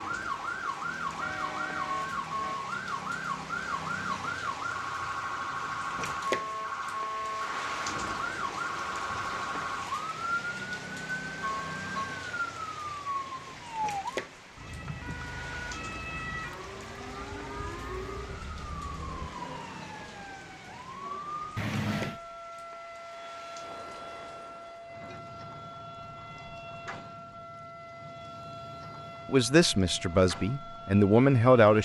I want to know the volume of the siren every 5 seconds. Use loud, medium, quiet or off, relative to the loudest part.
loud, loud, loud, medium, medium, medium, medium.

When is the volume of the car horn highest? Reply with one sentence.
The volume of the car horn peaks at 22 seconds.